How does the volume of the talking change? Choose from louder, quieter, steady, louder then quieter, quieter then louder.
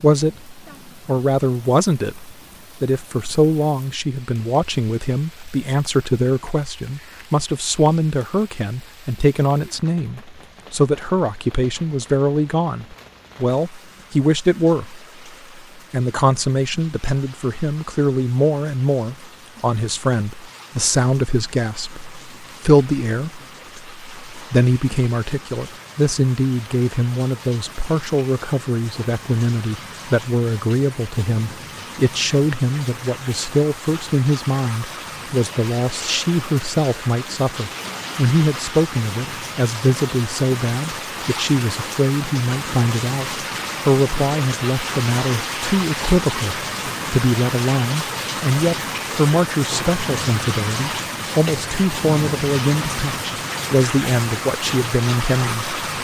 steady.